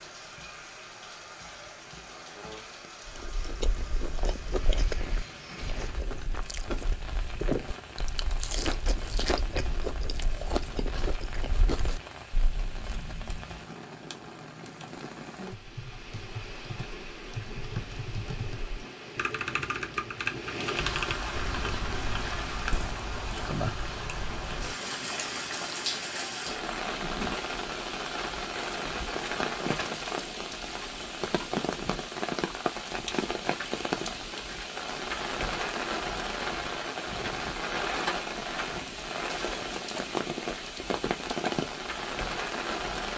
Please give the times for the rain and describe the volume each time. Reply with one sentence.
The rain can be heard from 0.0 to 43.1 s, getting louder.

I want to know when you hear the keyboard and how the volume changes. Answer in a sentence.
You can hear the keyboard from 12.6 to 22.4 s, getting louder.